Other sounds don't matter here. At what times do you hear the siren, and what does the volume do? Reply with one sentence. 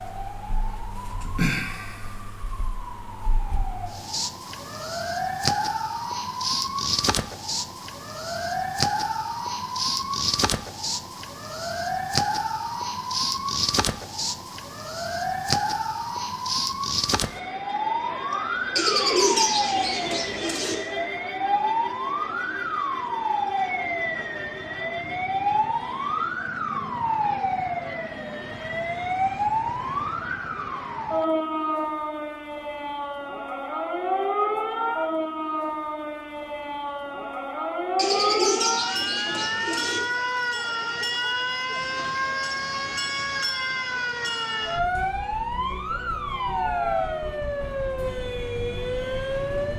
The siren can be heard from 0.0 to 49.7 s, at a steady volume.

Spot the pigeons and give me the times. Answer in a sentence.
The pigeons can be heard from 18.8 to 20.8 s and from 38.0 to 40.0 s.